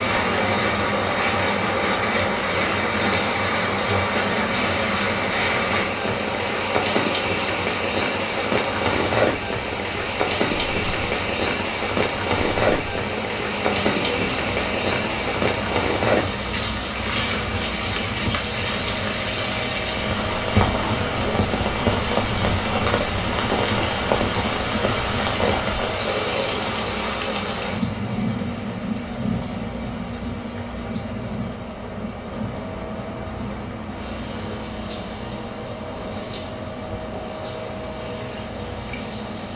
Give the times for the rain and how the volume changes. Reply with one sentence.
You can hear the rain from 0.0 to 39.5 s, getting quieter.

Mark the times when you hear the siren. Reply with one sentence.
You can't hear the siren here.